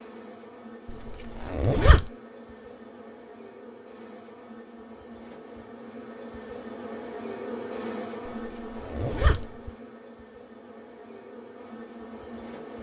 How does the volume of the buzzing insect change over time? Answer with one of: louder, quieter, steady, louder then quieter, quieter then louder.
louder then quieter.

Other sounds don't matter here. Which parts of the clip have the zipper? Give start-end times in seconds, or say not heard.
0.8-2.1, 8.2-9.6.